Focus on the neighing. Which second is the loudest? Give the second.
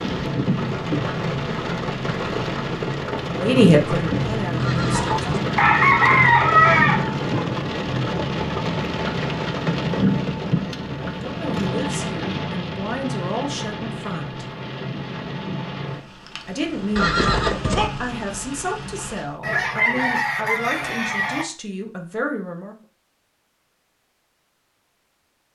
17 s.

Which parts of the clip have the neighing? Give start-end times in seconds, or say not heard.
4.5-5.2, 16.9-17.9.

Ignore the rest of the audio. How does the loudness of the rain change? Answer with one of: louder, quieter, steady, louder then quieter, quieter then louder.
quieter.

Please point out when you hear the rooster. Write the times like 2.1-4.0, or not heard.
4.9-7.2, 19.4-21.4.